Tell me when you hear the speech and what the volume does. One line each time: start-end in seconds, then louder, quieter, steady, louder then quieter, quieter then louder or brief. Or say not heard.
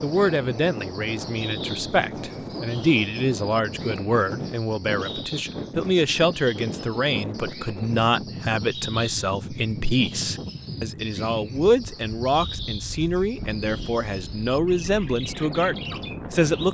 0.0-16.6 steady.